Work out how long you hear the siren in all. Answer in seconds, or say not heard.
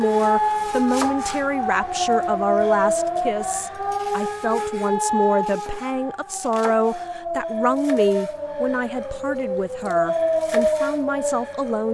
12 s.